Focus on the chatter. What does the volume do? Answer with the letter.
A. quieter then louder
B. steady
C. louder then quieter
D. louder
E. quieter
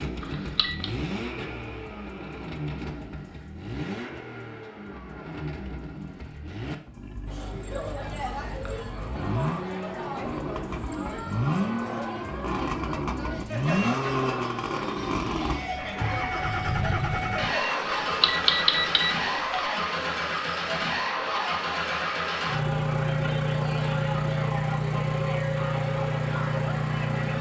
B.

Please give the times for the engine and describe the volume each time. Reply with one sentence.
You can hear the engine from 0.0 to 27.3 s, getting louder.